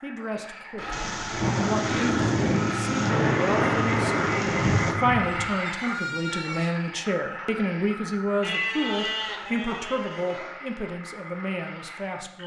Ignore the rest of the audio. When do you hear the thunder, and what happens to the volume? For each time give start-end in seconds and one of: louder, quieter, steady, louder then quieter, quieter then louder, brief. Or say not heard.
0.9-5.0 steady.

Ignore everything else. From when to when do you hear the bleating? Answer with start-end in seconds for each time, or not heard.
0.8-2.2, 4.5-6.7, 8.4-10.6.